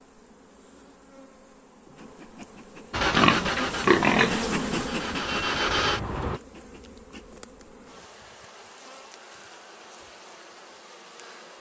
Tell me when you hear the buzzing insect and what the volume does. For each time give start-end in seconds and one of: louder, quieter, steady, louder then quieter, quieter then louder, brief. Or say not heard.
0.0-11.5 louder then quieter.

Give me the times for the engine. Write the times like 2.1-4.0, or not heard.
2.9-6.4.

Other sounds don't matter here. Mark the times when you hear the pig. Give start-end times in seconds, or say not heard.
3.1-4.9.